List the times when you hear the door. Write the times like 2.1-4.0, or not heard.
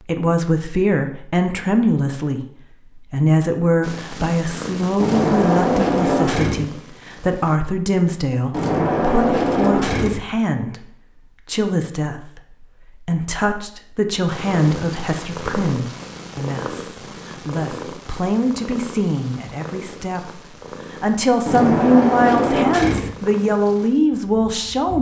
5.0-6.7, 8.5-10.2, 21.4-23.1.